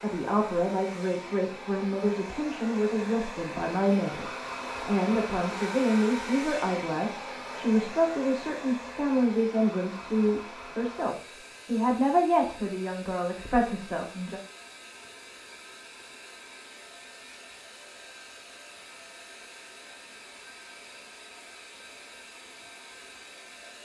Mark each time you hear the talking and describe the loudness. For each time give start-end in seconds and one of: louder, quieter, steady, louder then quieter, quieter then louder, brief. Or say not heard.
0.0-14.4 steady.